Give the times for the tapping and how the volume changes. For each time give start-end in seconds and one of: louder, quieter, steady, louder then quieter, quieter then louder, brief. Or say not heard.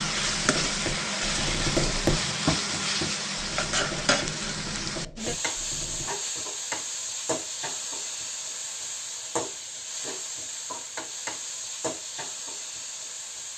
0.0-6.0 louder then quieter.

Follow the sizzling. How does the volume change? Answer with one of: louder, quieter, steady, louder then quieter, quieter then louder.
quieter.